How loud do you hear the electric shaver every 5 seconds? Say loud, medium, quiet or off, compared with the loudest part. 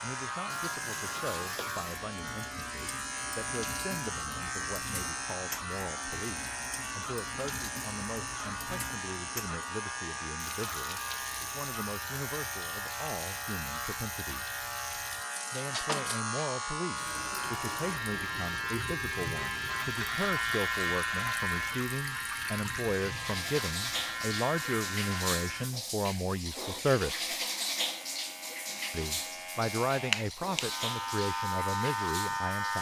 medium, medium, medium, loud, loud, medium, loud.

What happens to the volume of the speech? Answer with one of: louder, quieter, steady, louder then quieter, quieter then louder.
louder.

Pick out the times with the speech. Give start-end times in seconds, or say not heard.
0.0-14.6, 15.5-27.2, 28.9-32.7.